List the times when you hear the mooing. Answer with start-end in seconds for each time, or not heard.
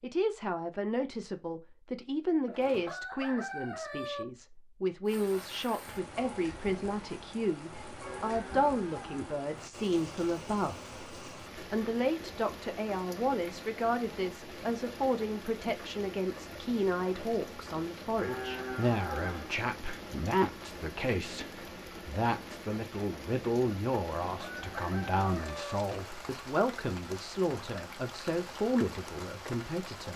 8.0-9.4, 18.1-19.6.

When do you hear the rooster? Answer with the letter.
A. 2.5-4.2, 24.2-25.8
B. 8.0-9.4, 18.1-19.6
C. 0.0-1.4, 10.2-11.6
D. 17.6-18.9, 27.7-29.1
A.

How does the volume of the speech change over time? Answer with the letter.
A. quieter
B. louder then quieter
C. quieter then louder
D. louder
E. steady
E.